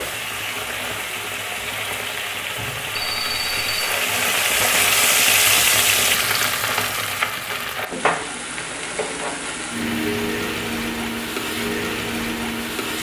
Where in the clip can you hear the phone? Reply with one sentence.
The phone can be heard from 3.0 to 3.9 s.